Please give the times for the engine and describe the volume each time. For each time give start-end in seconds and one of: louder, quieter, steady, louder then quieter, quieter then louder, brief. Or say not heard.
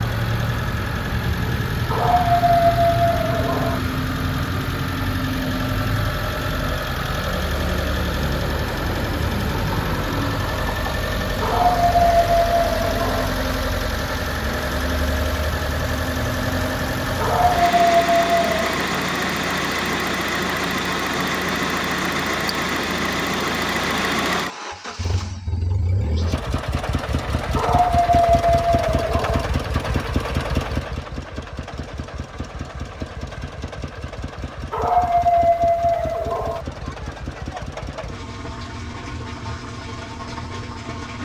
0.0-41.2 quieter.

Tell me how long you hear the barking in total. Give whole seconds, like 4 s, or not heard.
9 s.